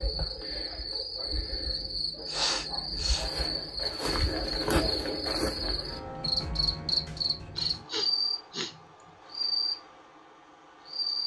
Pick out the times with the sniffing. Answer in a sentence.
The sniffing can be heard from 2.2 to 3.3 s and from 7.5 to 8.8 s.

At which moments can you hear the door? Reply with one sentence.
The door can't be heard in this clip.